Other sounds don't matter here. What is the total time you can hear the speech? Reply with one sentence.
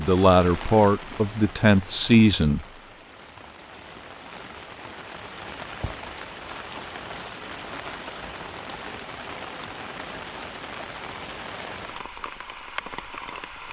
You can hear the speech for 3 seconds altogether.